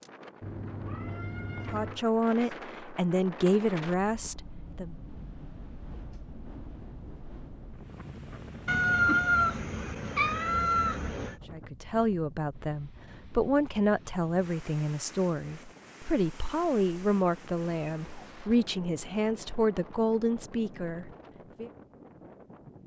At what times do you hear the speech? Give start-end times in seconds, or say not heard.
1.6-5.0, 11.5-21.7.